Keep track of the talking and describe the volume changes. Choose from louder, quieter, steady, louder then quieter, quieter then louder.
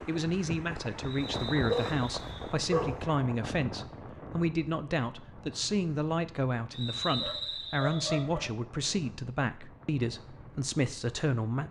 steady.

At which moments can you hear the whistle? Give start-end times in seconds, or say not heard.
1.0-2.5, 6.7-8.2.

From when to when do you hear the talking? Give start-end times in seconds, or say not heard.
0.1-11.6.